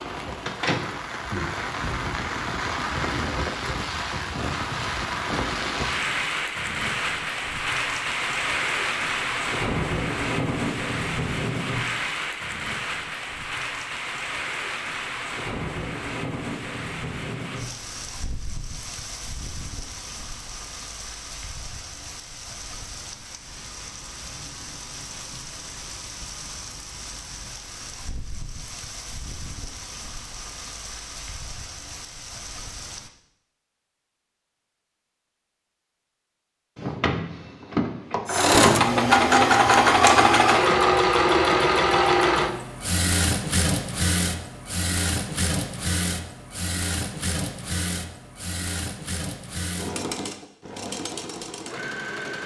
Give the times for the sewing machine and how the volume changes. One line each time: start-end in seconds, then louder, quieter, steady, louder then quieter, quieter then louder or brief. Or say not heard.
38.2-52.4 quieter.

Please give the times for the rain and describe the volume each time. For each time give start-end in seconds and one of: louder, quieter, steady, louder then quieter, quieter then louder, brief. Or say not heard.
0.0-33.1 quieter.